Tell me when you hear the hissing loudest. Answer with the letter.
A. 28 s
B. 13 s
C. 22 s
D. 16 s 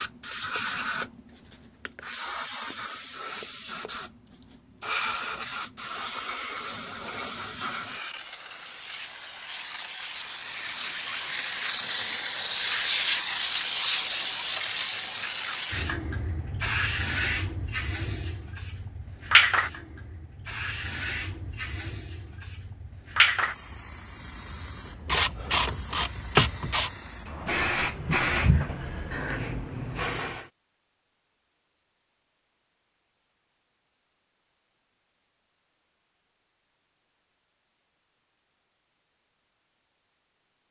B.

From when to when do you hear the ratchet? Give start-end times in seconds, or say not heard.
25.1-26.9.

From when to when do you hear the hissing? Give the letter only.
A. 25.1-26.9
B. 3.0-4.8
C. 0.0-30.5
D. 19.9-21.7
C.